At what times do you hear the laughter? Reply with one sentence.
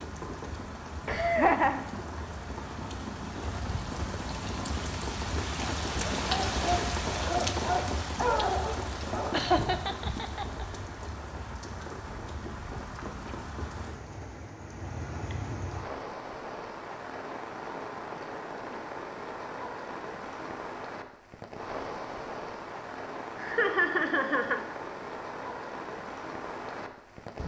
You can hear the laughter from 1.1 to 1.8 s, from 9.3 to 10.7 s and from 23.4 to 24.6 s.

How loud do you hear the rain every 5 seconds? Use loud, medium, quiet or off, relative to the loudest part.
medium, loud, medium, medium, medium, medium.